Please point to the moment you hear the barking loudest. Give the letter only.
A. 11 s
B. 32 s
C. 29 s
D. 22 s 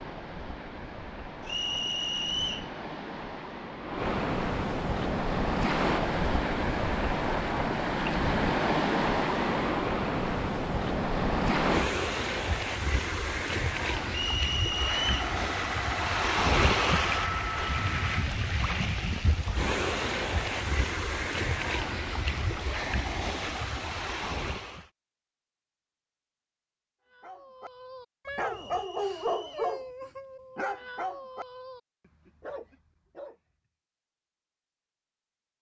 C.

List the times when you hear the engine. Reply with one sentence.
You can hear the engine from 14.8 to 18.2 s.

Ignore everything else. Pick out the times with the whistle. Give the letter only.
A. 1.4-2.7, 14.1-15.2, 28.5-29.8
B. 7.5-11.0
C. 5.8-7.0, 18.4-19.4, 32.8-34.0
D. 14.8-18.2
A.